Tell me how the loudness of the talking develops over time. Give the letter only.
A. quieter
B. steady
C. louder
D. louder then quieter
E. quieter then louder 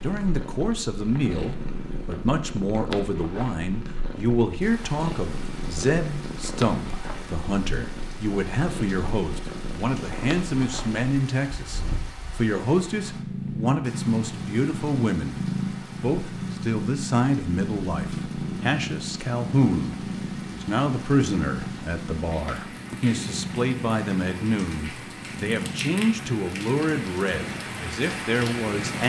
B.